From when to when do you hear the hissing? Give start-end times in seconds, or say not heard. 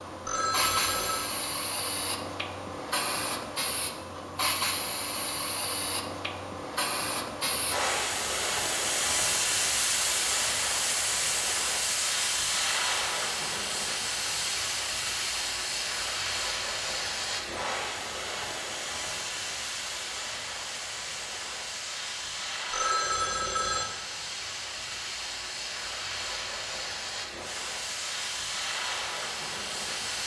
0.0-30.2.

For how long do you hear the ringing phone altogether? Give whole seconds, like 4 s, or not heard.
2 s.